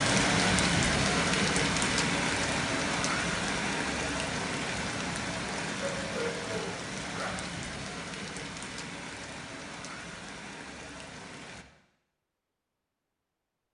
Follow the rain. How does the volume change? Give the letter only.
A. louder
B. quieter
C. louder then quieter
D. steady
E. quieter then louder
B.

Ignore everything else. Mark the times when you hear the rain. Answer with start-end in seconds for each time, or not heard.
0.0-11.7.